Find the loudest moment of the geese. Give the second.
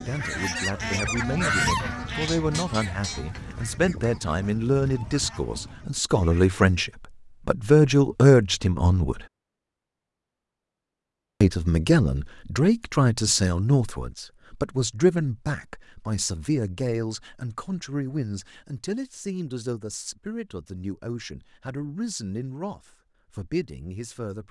2 s.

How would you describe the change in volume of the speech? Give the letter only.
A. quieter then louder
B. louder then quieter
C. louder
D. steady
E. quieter
B.